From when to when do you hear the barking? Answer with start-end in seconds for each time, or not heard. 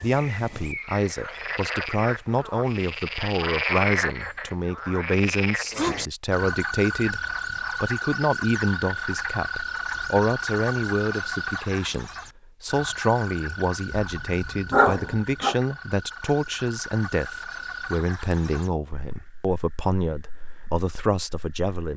14.0-15.6.